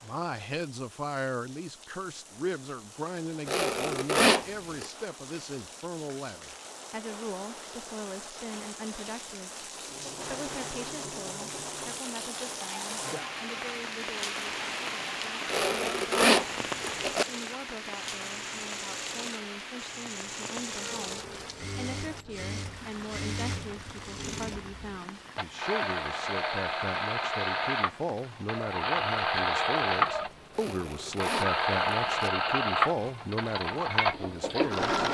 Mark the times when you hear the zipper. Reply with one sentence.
The zipper can be heard from 3.5 to 4.8 s, from 15.5 to 17.2 s and from 30.5 to 32.3 s.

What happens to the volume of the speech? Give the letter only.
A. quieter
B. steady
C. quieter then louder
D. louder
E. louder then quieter
C.